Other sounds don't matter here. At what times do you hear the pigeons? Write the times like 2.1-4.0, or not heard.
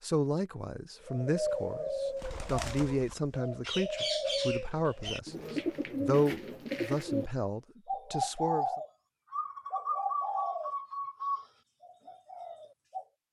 1.0-13.1.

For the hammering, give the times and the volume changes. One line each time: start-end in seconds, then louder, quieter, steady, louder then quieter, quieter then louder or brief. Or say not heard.
not heard.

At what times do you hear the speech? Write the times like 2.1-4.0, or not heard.
0.0-8.7.